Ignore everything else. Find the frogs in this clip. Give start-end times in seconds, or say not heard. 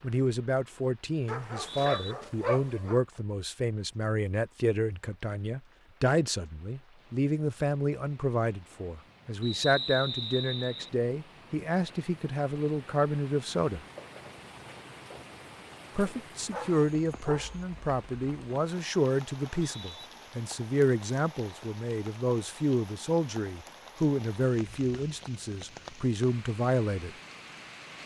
not heard.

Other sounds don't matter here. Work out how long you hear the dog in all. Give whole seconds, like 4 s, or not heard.
3 s.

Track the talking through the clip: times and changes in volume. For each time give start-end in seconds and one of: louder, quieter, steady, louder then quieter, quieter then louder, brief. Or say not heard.
0.0-13.8 steady
15.9-27.1 steady.